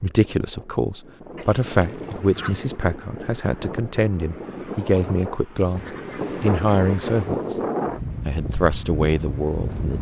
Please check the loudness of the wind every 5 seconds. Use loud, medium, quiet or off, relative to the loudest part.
medium, loud.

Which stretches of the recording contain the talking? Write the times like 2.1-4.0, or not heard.
0.0-7.6, 8.2-9.9.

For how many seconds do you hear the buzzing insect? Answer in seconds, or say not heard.
not heard.